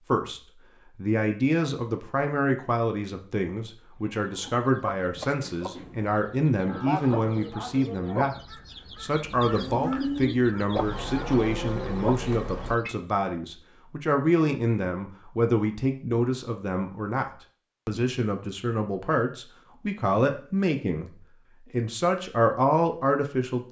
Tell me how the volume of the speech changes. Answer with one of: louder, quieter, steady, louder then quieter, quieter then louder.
steady.